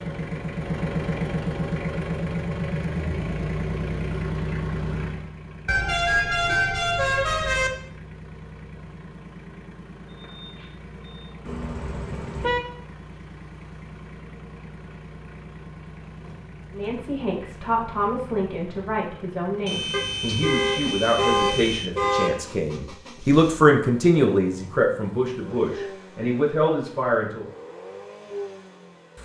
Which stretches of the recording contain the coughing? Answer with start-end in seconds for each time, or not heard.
not heard.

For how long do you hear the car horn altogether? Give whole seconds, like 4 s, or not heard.
6 s.